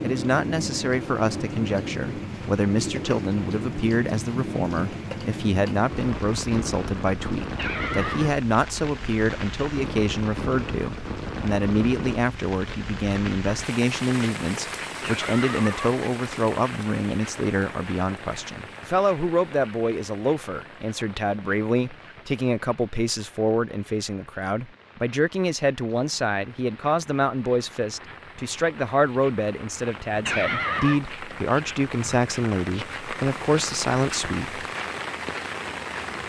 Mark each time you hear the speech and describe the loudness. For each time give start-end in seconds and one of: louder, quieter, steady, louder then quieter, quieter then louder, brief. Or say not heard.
0.0-34.6 steady.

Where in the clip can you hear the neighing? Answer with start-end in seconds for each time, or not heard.
7.5-8.4, 15.0-16.0, 30.2-31.0.